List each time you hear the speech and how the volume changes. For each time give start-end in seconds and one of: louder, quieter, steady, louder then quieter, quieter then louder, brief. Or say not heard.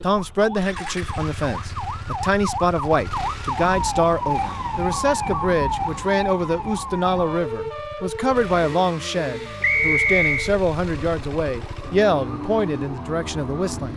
0.0-13.9 steady.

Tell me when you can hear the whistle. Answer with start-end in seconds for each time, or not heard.
9.6-10.5.